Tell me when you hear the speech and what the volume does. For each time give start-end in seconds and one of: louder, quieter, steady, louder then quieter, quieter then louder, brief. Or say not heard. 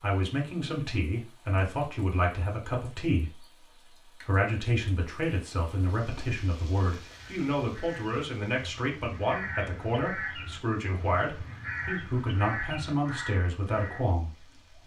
0.0-14.8 steady.